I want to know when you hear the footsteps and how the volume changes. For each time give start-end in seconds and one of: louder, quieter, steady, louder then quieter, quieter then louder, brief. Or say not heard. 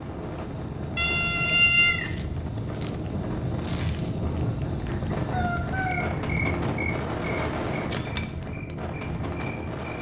not heard.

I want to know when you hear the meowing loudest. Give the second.
2 s.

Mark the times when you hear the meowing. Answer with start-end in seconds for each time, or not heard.
0.9-2.1, 5.3-6.0.